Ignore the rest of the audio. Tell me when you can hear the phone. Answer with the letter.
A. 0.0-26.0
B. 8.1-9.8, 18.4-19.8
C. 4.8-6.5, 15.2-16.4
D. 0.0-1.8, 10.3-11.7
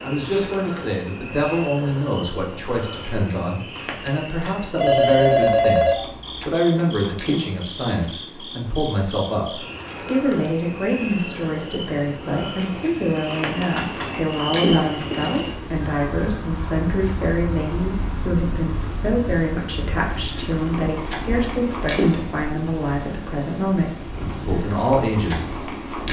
C.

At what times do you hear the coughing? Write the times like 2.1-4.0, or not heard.
not heard.